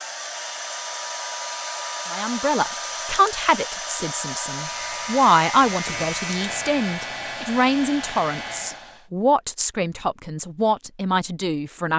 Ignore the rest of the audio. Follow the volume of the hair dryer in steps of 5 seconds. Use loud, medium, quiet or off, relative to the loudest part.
loud, loud, off.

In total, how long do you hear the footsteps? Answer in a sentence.
You can't hear the footsteps here.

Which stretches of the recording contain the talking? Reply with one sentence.
The talking can be heard from 2.1 to 11.9 s.